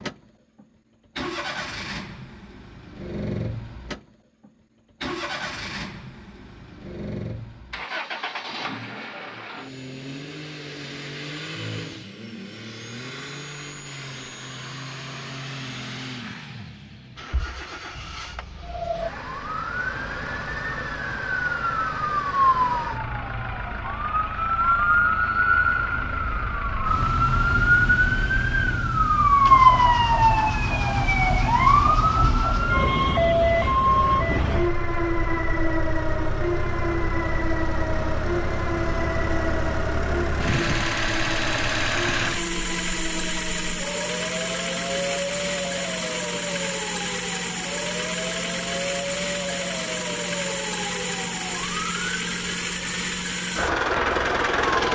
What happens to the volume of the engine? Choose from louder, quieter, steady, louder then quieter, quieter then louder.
louder.